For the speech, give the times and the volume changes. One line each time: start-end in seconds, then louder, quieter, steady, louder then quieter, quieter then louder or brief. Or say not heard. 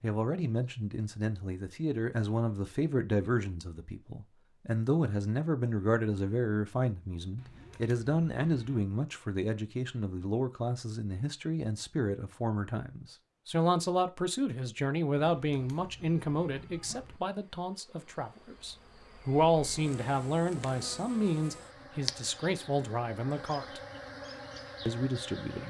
0.0-23.8 steady
24.9-25.6 brief.